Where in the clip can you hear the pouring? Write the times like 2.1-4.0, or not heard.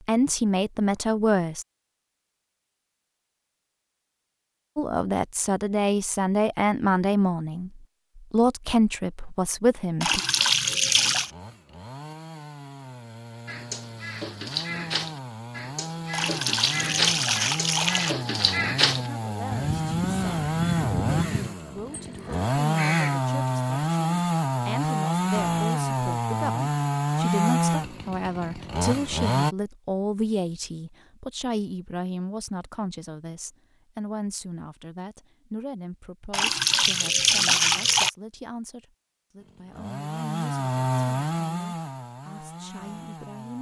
10.0-11.3, 16.1-18.1, 36.3-38.1.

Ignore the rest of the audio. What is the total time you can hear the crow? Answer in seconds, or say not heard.
10 s.